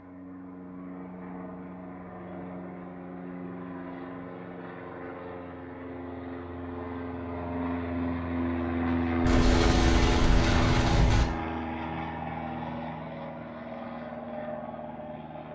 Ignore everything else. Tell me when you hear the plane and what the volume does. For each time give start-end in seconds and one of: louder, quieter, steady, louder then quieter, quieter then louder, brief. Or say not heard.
0.0-15.4 louder then quieter.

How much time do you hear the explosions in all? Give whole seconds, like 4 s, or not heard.
2 s.